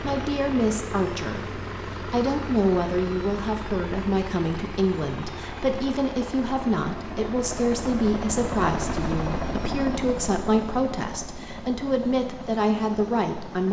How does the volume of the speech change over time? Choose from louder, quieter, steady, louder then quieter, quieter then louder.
steady.